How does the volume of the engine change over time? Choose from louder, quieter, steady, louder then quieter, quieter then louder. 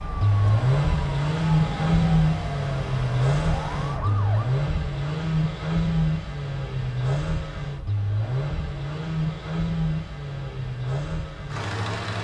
quieter.